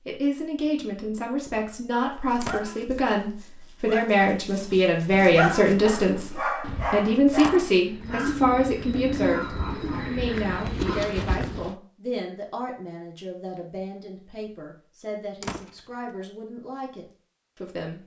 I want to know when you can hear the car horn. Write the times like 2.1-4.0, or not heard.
not heard.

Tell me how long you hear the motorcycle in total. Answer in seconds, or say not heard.
not heard.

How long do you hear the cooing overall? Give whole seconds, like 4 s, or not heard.
7 s.